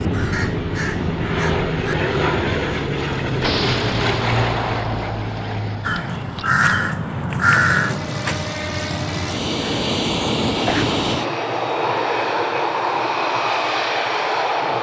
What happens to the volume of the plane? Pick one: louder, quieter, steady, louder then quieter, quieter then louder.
quieter then louder.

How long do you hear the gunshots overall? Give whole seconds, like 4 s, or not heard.
3 s.